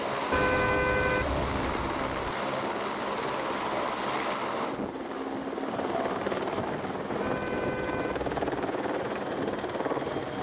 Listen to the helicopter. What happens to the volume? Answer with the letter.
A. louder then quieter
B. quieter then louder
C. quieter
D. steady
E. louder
D.